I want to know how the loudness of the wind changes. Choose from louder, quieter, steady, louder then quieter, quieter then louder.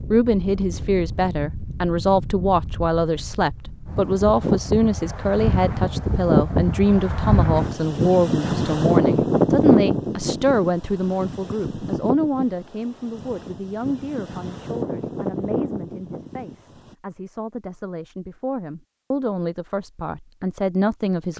louder then quieter.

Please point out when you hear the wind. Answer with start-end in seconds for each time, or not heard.
0.0-16.9.